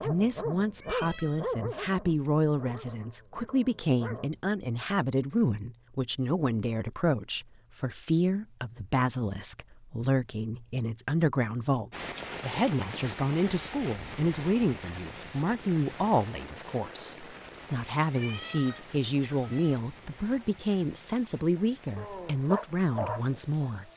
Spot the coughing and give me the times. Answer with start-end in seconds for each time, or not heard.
not heard.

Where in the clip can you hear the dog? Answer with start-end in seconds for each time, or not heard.
0.0-4.4, 21.6-23.9.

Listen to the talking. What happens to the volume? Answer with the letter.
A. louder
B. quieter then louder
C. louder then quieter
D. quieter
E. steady
E.